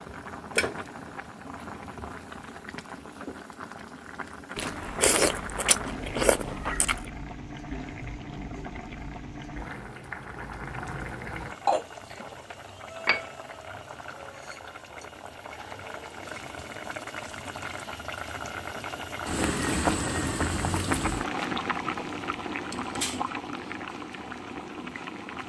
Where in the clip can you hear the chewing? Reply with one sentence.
You can hear the chewing from 4.5 to 7.0 s.